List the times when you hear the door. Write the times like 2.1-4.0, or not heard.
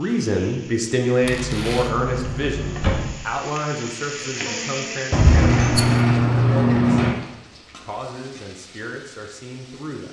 1.2-3.2, 5.1-7.2.